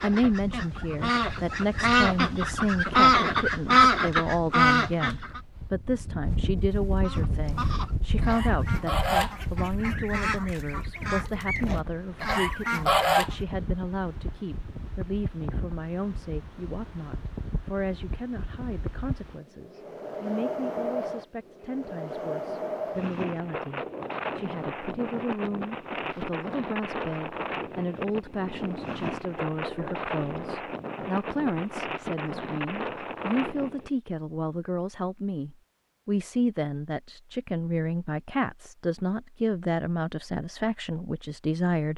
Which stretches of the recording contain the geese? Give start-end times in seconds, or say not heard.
0.0-5.4, 7.0-13.3.